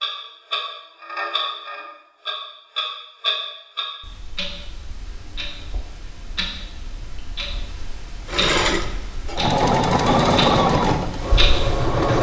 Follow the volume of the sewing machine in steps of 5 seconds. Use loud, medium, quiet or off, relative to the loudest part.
off, loud, loud.